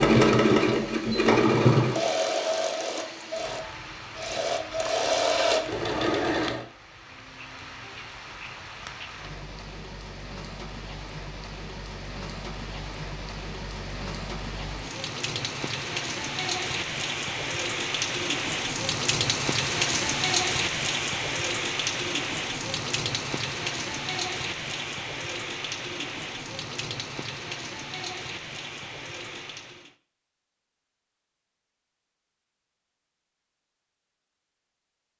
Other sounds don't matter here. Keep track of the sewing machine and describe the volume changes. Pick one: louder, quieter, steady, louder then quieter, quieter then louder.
quieter then louder.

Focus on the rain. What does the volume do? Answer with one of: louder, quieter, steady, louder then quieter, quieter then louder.
louder then quieter.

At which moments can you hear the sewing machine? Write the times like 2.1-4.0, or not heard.
0.0-6.7.